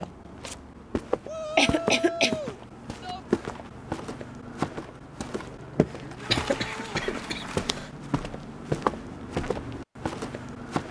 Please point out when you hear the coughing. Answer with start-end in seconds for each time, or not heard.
1.1-2.4, 6.3-7.9.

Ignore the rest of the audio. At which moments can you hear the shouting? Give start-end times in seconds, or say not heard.
1.2-3.2, 6.0-7.0.